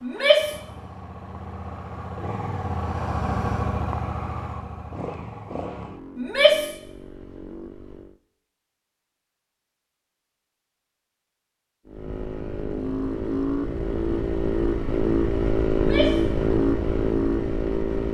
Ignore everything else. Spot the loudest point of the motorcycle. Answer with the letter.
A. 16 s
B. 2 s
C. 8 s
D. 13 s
A.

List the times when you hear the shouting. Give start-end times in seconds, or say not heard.
0.0-0.6, 6.2-6.8, 15.7-16.2.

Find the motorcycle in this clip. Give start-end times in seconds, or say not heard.
0.0-8.2, 11.8-18.0.